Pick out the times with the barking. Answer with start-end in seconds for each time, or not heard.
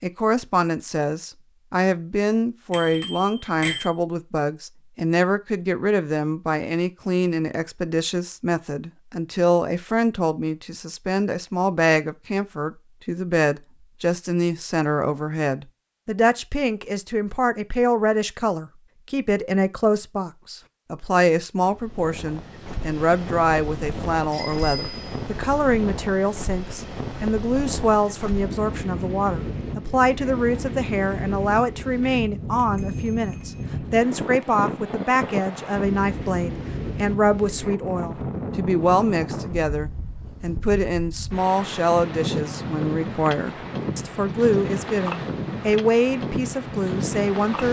not heard.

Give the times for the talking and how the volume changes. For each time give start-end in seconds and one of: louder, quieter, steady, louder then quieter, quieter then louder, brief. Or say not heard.
0.0-47.6 steady.